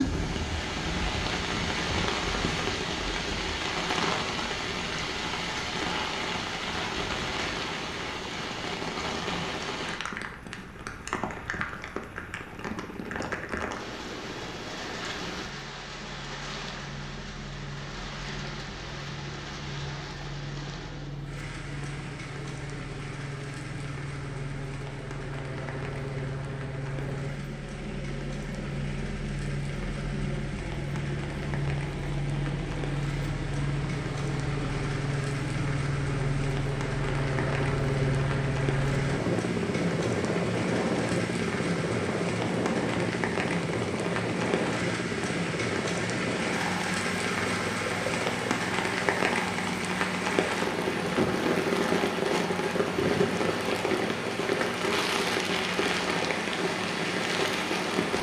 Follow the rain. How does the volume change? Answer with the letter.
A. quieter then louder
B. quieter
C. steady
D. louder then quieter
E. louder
A.